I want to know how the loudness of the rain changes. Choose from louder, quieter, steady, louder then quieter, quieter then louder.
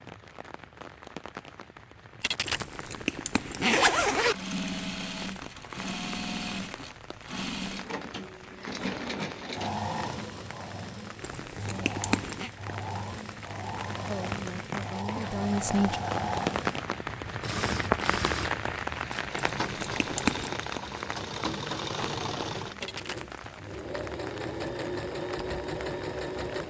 louder then quieter.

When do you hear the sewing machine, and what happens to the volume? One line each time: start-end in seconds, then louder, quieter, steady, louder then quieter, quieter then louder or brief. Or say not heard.
4.2-26.6 steady.